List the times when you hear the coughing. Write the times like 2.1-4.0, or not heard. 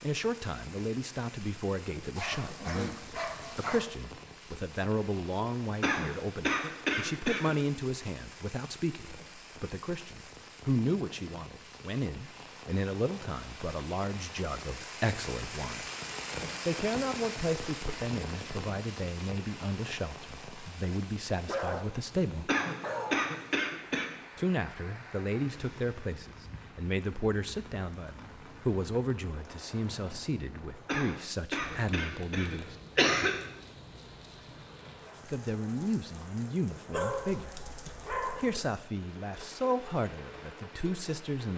5.8-7.5, 22.4-24.1, 30.9-33.4.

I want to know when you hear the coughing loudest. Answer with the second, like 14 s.
33 s.